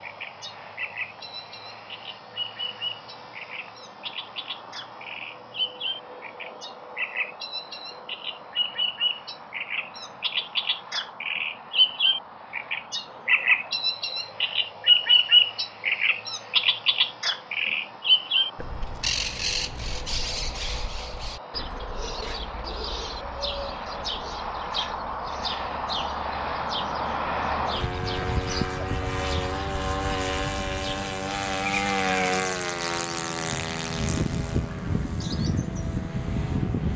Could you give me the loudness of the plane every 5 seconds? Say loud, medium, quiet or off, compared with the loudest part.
quiet, quiet, quiet, quiet, medium, loud, loud, loud.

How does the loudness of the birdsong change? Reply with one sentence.
The volume of the birdsong goes up, then down.